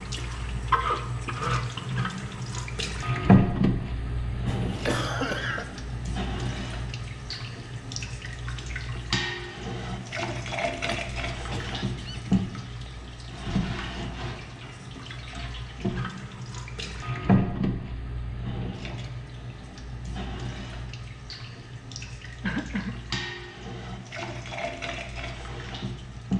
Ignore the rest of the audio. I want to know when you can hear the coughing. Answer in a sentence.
The coughing can be heard from 4.5 to 5.7 s, from 10.8 to 12.9 s and from 22.4 to 22.9 s.